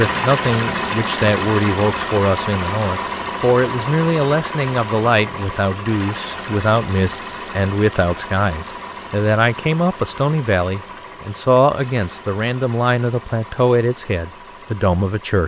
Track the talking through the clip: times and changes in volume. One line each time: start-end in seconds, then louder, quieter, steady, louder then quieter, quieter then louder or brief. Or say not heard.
0.0-15.4 steady.